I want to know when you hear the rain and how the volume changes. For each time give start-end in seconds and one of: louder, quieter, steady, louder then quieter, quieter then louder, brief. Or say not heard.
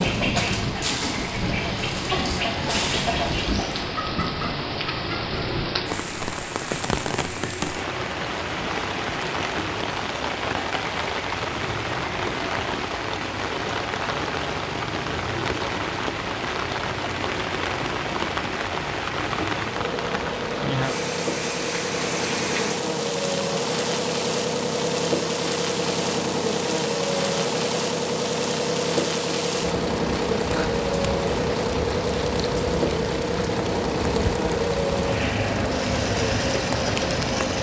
0.0-37.5 steady.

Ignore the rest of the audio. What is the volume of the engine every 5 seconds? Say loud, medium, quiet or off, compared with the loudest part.
medium, medium, medium, medium, loud, loud, loud, loud.